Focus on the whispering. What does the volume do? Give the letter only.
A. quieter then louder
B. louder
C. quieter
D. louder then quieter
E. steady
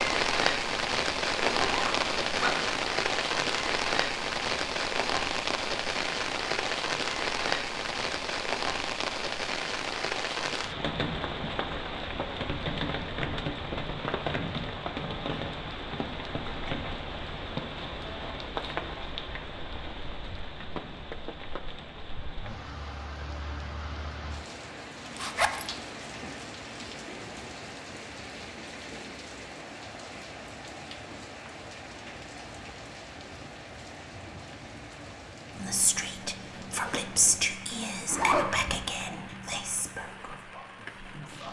D.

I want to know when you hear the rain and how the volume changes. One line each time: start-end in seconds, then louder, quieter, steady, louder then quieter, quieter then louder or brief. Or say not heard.
0.0-41.4 quieter.